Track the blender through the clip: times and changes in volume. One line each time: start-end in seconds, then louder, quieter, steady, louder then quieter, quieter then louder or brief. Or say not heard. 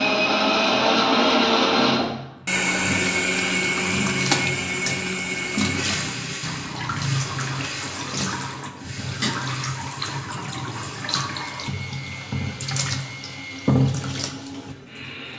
0.0-15.3 quieter.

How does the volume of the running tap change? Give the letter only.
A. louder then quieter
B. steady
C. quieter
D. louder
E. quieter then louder
D.